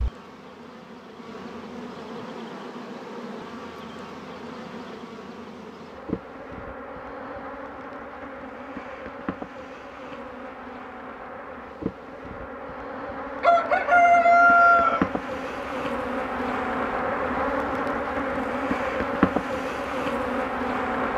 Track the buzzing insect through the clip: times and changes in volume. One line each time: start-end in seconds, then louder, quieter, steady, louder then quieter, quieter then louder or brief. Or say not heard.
0.0-21.1 louder.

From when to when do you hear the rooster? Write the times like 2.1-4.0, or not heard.
13.4-15.1.